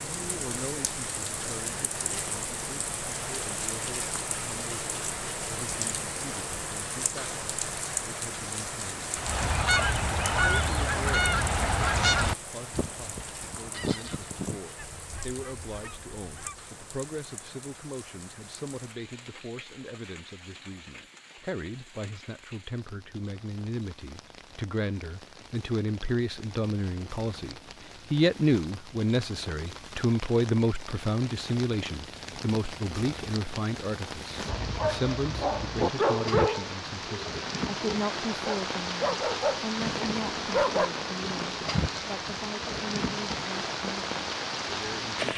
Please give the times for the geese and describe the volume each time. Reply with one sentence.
You can hear the geese from 9.2 to 16.7 s, getting quieter.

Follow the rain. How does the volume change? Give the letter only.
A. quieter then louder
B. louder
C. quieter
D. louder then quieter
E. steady
A.